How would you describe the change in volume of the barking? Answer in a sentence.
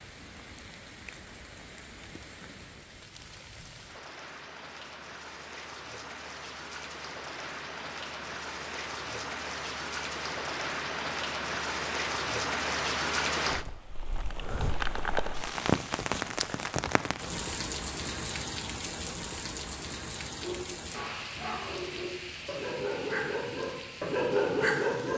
The volume of the barking goes up.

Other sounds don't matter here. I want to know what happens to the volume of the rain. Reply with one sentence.
The volume of the rain goes up, then down.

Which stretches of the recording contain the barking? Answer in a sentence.
You can hear the barking from 20.4 to 25.1 s.